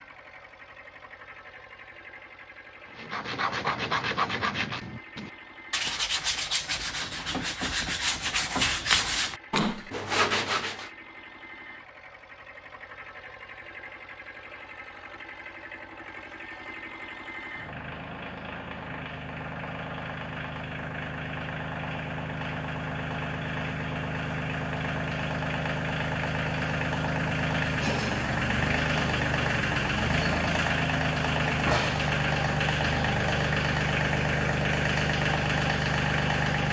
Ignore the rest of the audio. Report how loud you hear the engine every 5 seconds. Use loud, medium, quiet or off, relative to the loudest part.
quiet, quiet, quiet, quiet, medium, loud, loud, loud.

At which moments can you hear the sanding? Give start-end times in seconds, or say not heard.
3.0-10.9.